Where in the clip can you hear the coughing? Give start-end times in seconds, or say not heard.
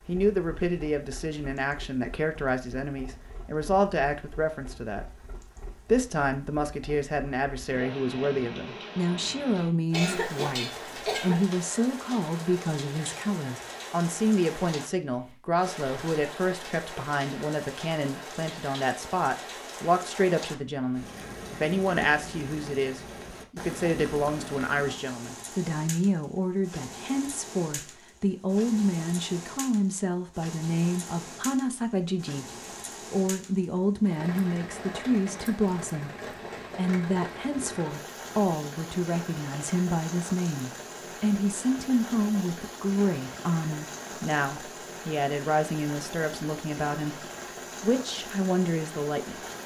9.9-11.5.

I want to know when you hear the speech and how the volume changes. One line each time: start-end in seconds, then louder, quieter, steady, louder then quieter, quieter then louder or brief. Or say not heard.
0.1-49.5 steady.